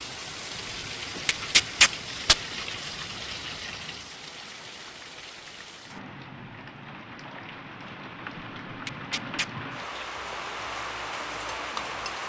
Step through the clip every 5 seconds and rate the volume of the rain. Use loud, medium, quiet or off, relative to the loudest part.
loud, medium, loud.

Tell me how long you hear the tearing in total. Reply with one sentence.
The tearing can be heard for 2 seconds in total.